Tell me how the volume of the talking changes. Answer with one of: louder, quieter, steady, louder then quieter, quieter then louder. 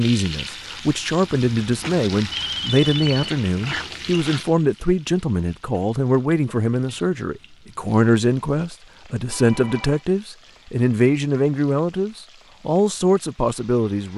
steady.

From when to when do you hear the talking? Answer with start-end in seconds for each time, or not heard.
0.0-14.1.